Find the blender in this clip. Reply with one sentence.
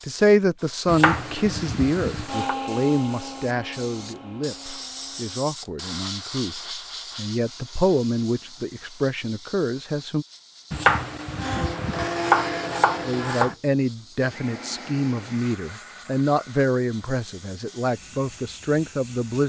You can hear the blender from 2.2 to 5.5 s and from 11.3 to 19.4 s.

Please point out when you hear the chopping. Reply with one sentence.
The chopping can be heard from 0.8 to 2.5 s and from 10.7 to 13.6 s.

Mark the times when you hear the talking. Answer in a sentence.
The talking can be heard from 0.1 to 10.2 s and from 13.1 to 19.4 s.